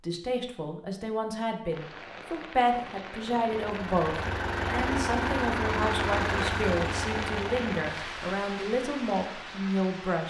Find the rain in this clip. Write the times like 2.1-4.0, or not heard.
1.7-10.2.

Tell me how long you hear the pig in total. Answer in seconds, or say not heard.
not heard.